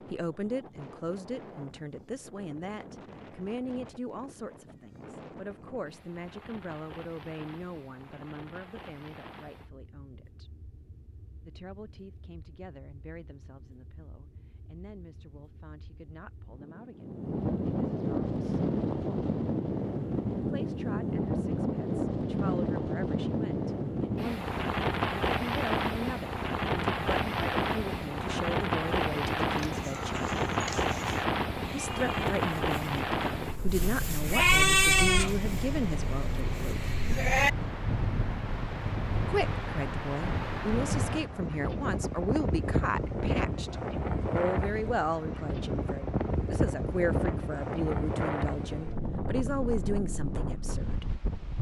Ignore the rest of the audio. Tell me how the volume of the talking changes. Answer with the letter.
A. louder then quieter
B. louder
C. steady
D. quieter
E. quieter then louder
E.